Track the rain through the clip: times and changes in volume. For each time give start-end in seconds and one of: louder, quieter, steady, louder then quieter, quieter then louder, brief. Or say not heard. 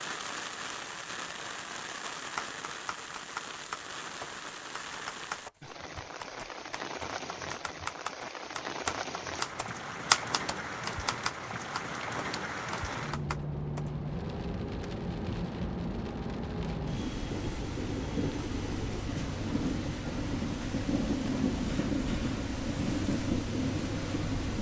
0.0-24.5 louder.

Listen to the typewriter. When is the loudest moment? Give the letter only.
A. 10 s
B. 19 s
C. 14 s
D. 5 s
A.